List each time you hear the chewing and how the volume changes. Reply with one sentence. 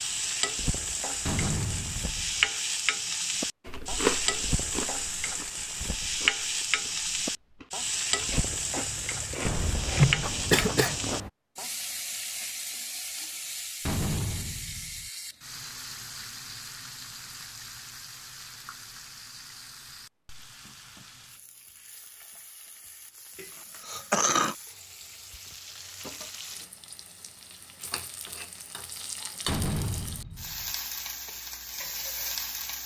The chewing can be heard from 3.6 to 11.3 s, getting quieter then louder.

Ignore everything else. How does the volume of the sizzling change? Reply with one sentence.
The volume of the sizzling goes down, then up.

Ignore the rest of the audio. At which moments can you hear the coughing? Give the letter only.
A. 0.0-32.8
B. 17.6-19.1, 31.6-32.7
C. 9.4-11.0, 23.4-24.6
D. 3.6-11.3
C.